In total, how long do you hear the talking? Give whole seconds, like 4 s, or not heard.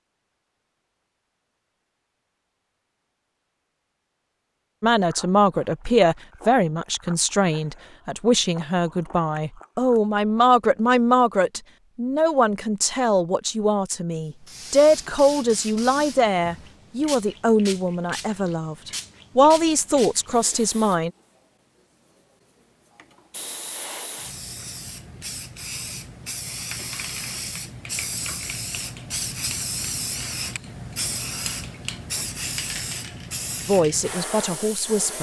18 s.